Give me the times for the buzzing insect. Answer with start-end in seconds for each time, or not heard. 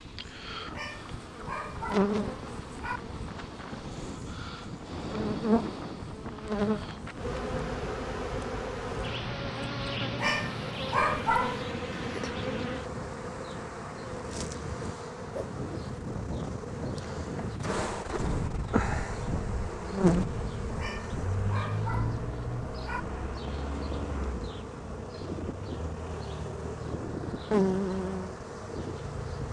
0.0-29.4.